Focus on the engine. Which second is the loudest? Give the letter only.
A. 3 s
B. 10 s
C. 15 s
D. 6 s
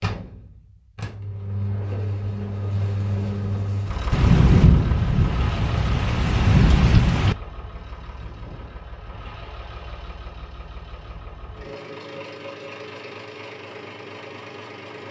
A.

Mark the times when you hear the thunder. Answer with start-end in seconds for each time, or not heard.
4.1-7.3.